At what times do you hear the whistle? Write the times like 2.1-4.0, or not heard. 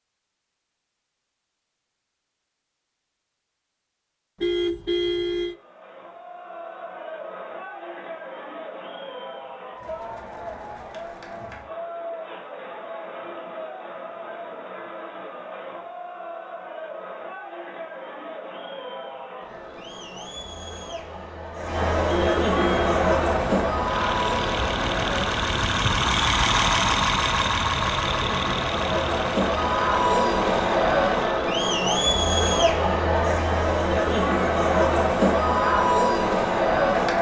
not heard.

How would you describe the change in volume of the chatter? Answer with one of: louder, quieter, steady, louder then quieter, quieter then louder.
louder.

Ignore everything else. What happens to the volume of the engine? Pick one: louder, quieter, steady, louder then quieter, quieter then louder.
louder then quieter.